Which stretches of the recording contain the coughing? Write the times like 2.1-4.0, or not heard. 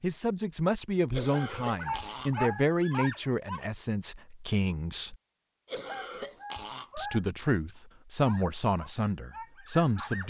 1.1-2.6, 5.7-7.2.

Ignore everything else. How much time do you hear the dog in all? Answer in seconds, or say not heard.
4 s.